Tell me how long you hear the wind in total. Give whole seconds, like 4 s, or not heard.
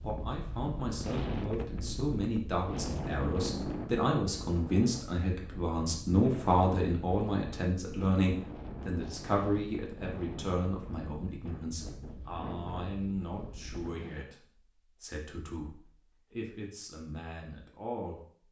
14 s.